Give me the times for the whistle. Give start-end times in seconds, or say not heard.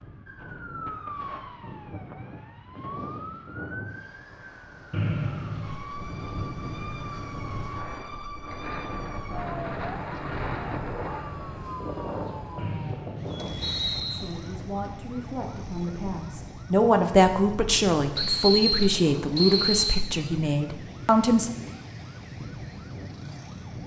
4.9-5.8, 12.6-14.2, 18.1-20.0.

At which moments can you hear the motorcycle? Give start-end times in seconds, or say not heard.
not heard.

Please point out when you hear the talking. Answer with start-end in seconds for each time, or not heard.
14.1-21.5.